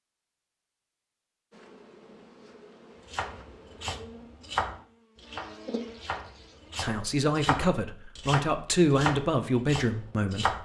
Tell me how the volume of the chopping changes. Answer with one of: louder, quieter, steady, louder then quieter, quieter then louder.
quieter then louder.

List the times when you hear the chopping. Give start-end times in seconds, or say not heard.
3.1-10.5.